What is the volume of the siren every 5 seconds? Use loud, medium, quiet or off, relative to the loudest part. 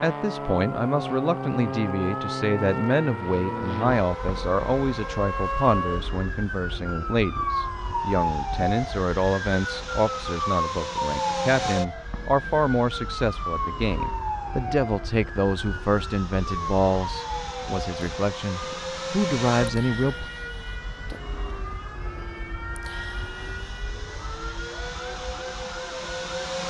medium, loud, loud, medium, medium, medium.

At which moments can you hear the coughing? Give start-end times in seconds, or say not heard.
not heard.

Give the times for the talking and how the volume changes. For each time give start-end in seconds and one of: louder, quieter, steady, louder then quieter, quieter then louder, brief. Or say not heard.
0.0-20.3 steady.